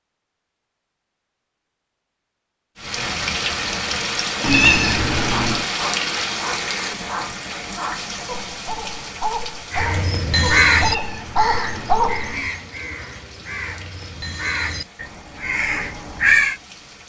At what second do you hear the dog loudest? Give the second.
12 s.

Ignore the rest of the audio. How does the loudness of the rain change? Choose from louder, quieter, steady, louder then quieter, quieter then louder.
quieter.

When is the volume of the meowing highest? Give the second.
5 s.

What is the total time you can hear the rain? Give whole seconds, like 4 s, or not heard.
14 s.